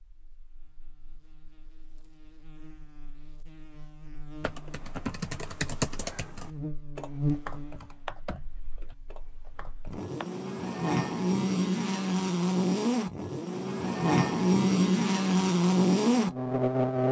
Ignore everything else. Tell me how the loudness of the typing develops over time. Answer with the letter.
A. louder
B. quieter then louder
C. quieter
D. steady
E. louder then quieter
C.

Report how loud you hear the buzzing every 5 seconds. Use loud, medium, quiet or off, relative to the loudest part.
quiet, quiet, loud, loud.